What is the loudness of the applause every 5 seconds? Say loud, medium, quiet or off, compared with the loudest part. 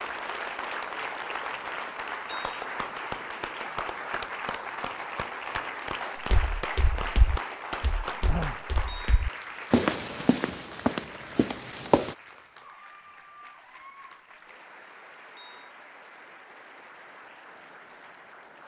loud, loud, quiet, quiet.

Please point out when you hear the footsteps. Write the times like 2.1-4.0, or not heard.
6.3-12.2.